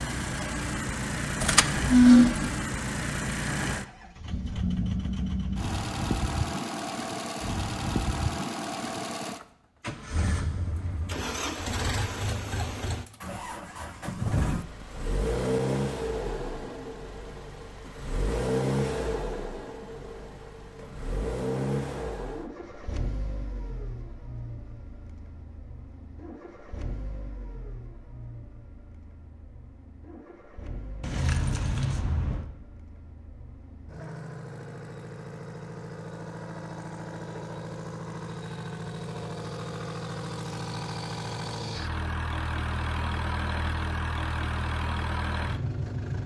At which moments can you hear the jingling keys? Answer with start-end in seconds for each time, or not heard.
1.4-2.5, 31.0-32.5.